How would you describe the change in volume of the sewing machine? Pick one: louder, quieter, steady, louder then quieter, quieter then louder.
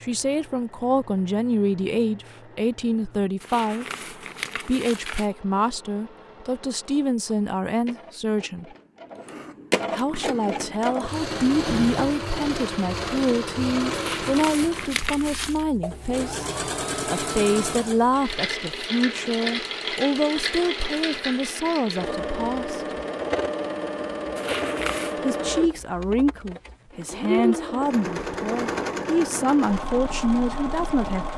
louder.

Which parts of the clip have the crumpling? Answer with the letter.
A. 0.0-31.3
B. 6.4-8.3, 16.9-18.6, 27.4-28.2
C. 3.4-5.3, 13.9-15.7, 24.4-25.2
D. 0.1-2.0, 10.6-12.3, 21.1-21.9
C.